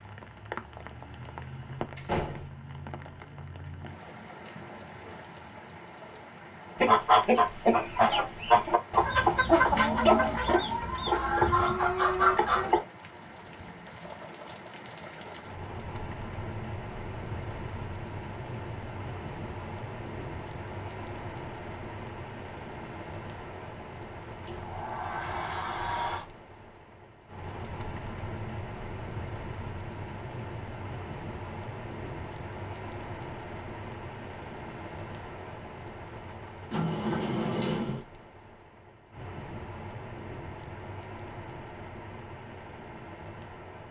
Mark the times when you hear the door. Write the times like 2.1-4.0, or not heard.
1.9-2.5, 24.4-26.2, 36.7-38.0.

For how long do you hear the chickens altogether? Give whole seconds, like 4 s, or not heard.
6 s.